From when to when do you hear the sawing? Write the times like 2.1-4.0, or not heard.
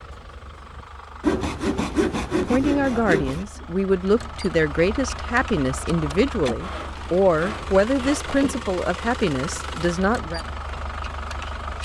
1.2-3.5, 6.5-8.5.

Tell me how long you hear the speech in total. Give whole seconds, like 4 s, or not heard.
8 s.